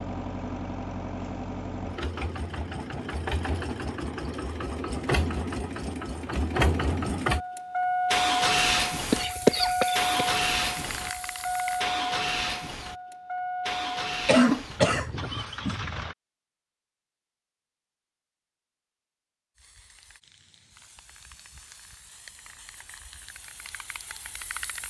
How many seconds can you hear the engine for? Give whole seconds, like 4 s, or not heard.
16 s.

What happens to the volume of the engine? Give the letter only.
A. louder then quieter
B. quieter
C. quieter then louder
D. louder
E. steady
A.